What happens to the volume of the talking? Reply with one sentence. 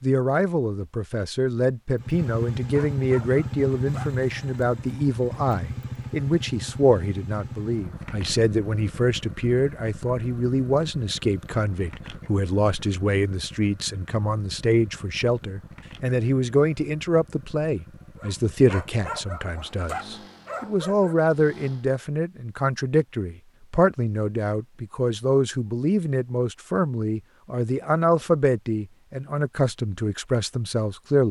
The loudness of the talking stays about the same.